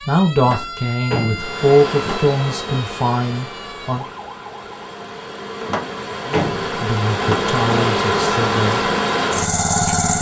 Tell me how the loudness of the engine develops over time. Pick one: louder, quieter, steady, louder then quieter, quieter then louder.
quieter then louder.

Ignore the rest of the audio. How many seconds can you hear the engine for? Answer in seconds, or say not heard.
9 s.